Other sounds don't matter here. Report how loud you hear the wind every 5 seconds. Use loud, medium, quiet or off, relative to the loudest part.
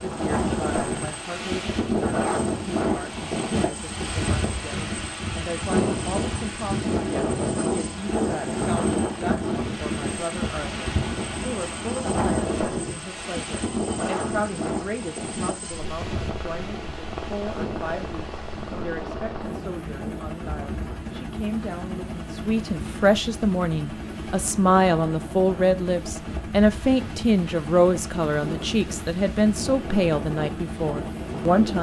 loud, loud, loud, medium, quiet, quiet, medium.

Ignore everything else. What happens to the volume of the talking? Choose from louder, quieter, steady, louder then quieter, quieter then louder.
louder.